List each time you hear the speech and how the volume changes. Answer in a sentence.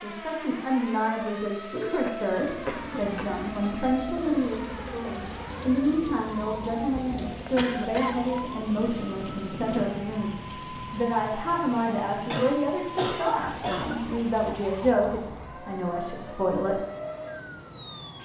The speech can be heard from 0.0 to 16.9 s, at a steady volume.